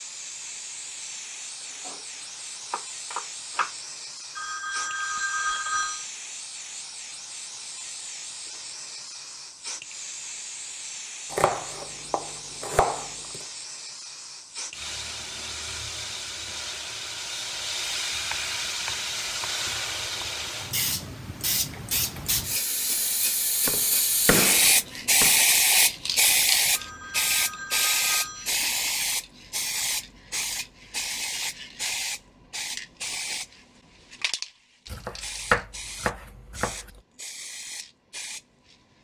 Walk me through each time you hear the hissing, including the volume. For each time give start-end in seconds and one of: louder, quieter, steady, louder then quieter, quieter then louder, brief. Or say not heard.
0.0-38.8 louder then quieter.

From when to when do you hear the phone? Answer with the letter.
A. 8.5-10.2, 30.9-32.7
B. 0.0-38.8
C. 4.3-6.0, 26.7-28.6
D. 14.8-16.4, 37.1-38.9
C.